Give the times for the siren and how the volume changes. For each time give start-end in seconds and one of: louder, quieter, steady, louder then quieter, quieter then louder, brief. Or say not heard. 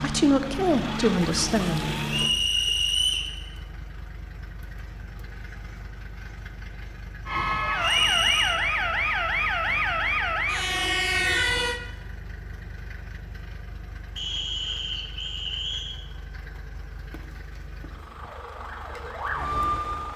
0.0-2.4 brief
7.2-11.8 steady
18.1-20.1 brief.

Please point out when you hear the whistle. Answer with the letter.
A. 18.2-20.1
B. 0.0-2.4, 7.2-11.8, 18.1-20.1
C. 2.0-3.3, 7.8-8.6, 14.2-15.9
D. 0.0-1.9
C.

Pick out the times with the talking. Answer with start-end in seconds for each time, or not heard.
0.0-1.9.